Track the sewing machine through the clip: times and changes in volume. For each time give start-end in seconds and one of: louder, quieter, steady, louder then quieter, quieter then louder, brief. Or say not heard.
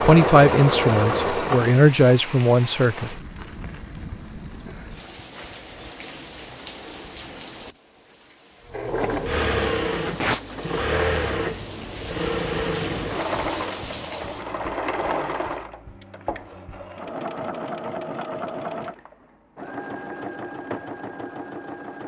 0.0-1.9 brief
8.7-22.0 quieter.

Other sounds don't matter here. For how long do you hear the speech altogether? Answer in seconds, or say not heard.
3 s.